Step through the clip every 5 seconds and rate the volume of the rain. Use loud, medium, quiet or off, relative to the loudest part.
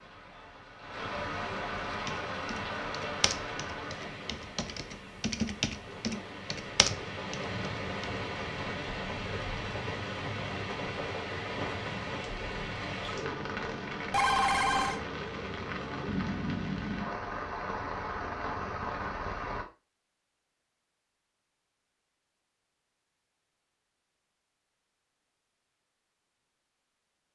loud, loud, loud, loud, off, off.